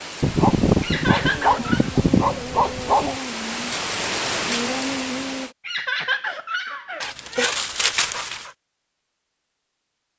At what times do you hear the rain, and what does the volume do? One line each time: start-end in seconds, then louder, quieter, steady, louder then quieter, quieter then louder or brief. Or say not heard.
0.0-5.5 louder.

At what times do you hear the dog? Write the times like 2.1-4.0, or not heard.
0.2-3.2, 7.0-8.5.